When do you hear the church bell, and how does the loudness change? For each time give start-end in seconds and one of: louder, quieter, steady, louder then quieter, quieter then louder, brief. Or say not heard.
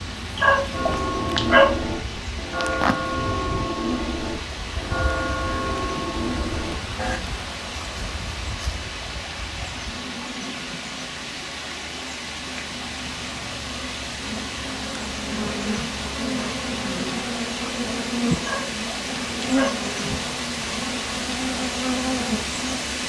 0.7-7.2 steady.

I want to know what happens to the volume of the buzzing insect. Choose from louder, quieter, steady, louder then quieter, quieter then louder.
quieter then louder.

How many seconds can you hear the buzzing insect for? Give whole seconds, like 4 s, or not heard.
23 s.